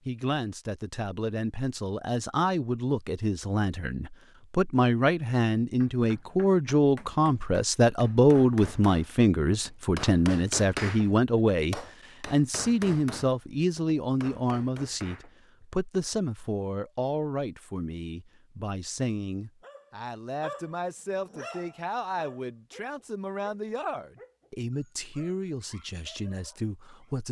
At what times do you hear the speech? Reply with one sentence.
The speech can be heard from 0.1 to 27.2 s.